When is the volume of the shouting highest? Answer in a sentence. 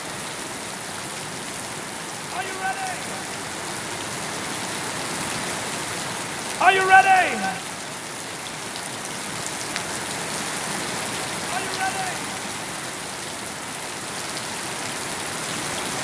The volume of the shouting peaks at 7 seconds.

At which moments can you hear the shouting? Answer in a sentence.
You can hear the shouting from 2.3 to 3.1 s, from 6.6 to 7.6 s and from 11.4 to 12.3 s.